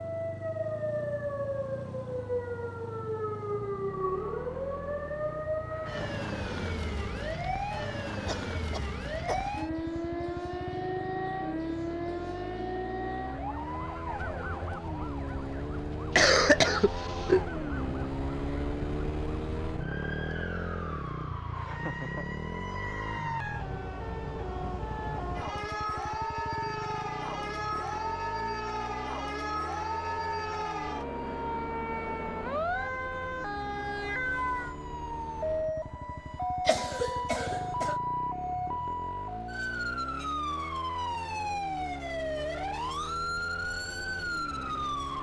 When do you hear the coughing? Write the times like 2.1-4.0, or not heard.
8.2-9.7, 16.1-17.4, 36.6-38.0.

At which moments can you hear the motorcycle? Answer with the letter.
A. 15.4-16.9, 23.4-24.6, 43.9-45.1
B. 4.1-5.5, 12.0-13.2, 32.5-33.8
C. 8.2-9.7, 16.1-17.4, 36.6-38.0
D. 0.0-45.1
D.